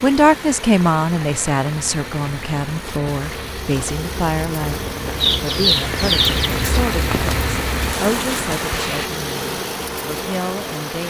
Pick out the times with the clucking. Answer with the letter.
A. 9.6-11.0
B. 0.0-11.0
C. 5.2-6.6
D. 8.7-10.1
C.